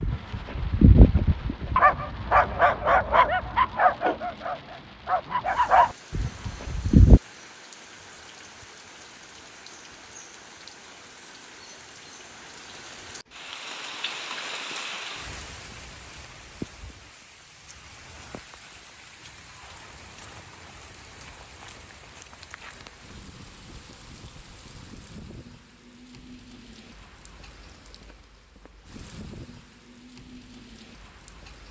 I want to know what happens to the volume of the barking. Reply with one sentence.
The volume of the barking goes down, then up.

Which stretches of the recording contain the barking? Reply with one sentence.
You can hear the barking from 0.0 to 7.2 s.